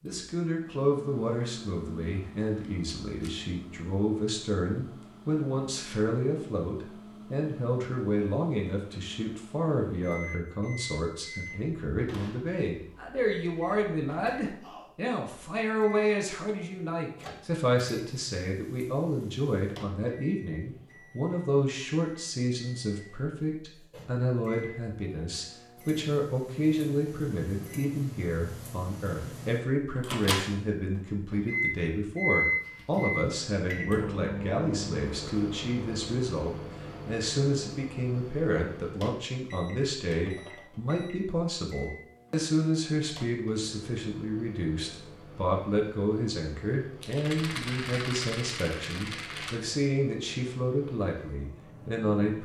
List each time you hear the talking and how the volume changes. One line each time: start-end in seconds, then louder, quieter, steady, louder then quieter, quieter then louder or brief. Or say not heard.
0.0-52.3 steady.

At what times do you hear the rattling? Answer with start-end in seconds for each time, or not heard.
2.5-3.4, 47.0-49.5.